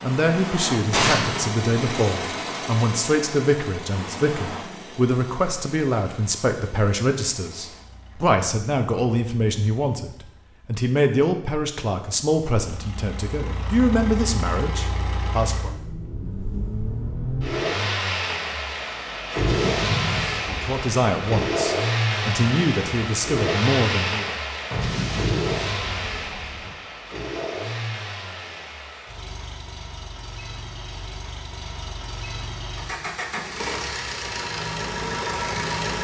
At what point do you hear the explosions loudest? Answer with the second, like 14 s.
1 s.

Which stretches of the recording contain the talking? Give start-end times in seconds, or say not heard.
0.0-15.7, 20.4-24.4.